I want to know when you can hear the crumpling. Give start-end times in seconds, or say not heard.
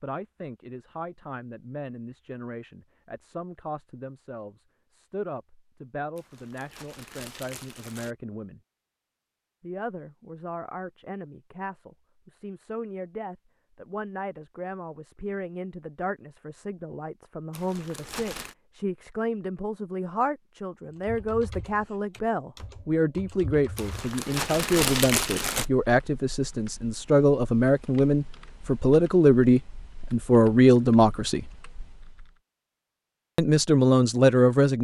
6.2-8.2, 17.5-18.6, 23.8-25.6.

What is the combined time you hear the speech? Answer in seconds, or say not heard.
32 s.